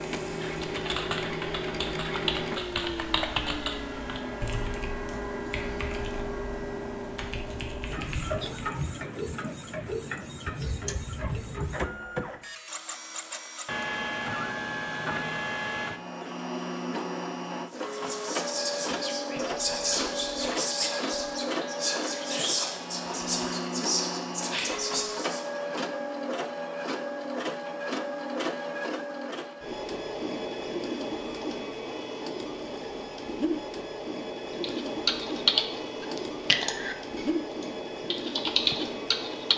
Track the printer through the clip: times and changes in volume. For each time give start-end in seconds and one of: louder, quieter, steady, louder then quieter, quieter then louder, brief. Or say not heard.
0.0-39.5 steady.